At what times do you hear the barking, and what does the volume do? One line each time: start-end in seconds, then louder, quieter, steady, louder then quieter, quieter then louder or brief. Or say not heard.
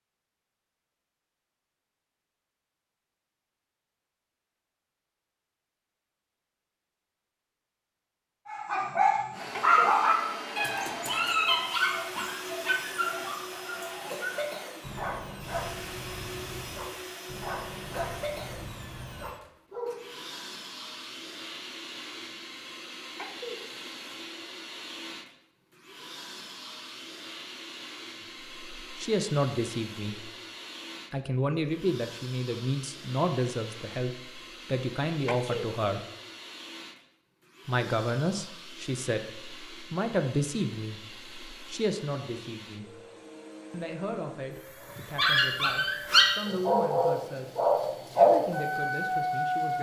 8.4-20.0 quieter
45.0-49.7 louder then quieter.